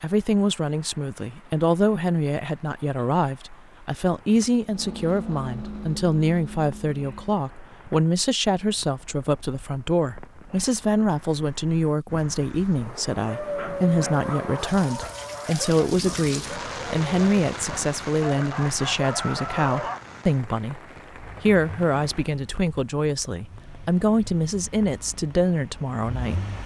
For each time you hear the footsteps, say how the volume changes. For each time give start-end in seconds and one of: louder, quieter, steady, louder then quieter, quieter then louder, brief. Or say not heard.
not heard.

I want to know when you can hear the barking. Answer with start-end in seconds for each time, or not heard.
13.2-20.0.